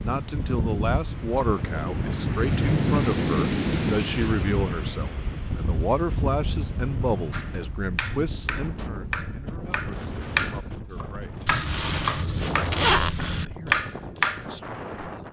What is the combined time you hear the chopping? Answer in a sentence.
The chopping can be heard for 7 seconds in total.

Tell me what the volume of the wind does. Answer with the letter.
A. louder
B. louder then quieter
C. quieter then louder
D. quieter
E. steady
D.